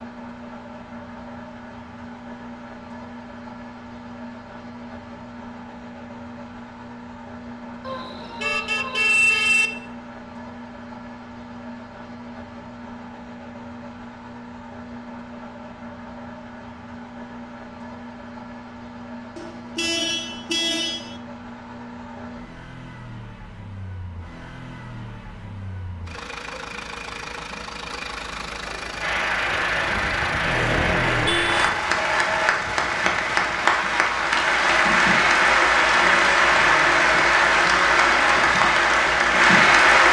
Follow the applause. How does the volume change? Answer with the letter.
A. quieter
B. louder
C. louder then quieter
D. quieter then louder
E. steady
B.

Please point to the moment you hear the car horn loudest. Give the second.
9 s.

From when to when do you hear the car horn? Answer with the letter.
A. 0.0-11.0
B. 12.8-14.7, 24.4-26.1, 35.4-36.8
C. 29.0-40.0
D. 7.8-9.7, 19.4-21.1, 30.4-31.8
D.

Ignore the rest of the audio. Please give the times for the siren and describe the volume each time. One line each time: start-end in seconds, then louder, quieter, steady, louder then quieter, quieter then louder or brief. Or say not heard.
not heard.